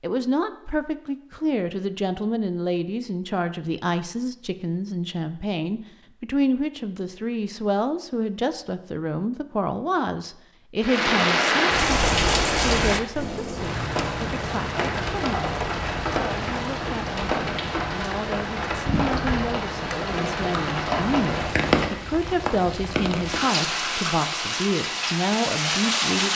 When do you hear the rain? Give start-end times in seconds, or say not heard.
10.8-26.2.